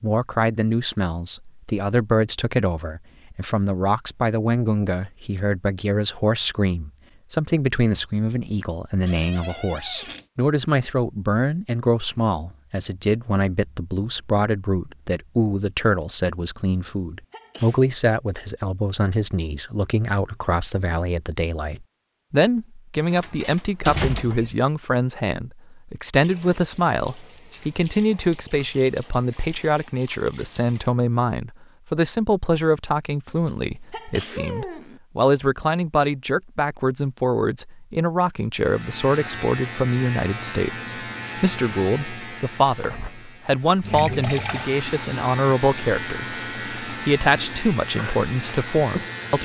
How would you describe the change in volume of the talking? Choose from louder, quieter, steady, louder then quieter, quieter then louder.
steady.